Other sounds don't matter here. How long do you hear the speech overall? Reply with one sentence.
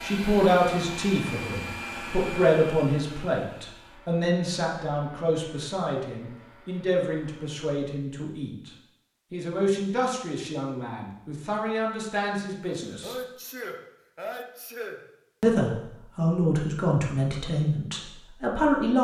You can hear the speech for 16 seconds altogether.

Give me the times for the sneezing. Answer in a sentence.
You can hear the sneezing from 12.8 to 15.0 s.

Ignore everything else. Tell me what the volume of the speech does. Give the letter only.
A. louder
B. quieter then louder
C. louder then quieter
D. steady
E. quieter
B.